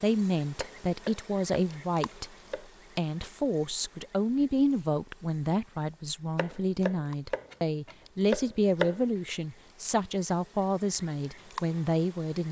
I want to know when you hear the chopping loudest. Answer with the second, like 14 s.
9 s.